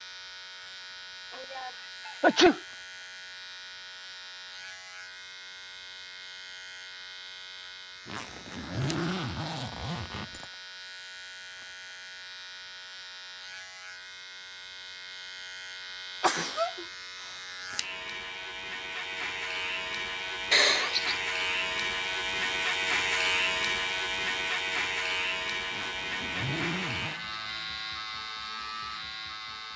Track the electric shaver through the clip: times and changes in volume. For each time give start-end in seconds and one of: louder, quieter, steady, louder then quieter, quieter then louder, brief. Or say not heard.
0.0-29.7 louder.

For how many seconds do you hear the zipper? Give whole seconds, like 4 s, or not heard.
4 s.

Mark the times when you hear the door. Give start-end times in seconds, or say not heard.
not heard.